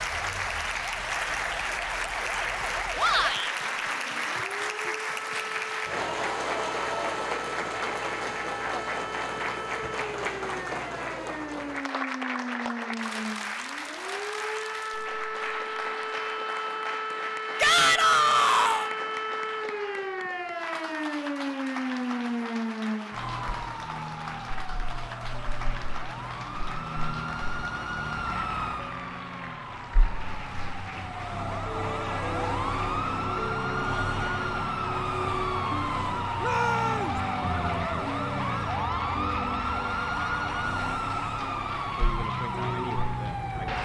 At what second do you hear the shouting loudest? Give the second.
18 s.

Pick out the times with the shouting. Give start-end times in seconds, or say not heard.
3.0-3.5, 17.6-18.9, 36.4-37.1.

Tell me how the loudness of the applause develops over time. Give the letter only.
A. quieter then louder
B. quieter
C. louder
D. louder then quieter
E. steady
B.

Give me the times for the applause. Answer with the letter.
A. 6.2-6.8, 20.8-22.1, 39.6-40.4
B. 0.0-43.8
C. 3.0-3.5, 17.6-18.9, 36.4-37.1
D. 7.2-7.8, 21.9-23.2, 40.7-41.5
B.